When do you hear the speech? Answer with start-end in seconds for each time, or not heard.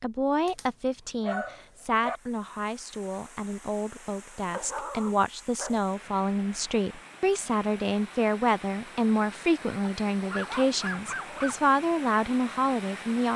0.0-13.3.